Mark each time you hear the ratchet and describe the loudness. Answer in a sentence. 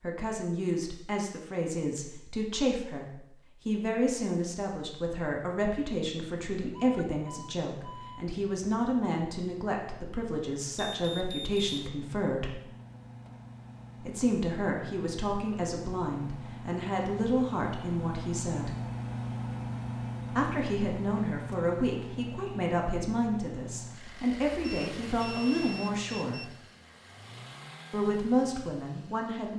The ratchet can't be heard in this clip.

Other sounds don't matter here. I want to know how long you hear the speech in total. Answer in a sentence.
The speech can be heard for 25 seconds in total.